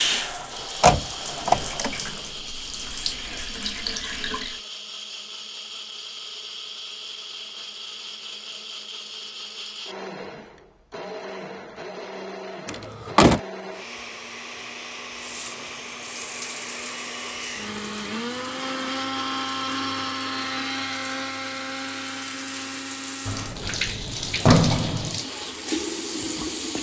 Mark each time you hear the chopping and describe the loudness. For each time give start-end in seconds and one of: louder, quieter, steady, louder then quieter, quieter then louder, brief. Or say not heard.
not heard.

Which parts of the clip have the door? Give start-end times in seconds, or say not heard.
0.8-1.9, 12.7-13.4, 23.3-25.1.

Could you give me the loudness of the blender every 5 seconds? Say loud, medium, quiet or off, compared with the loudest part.
medium, medium, medium, loud, loud, medium.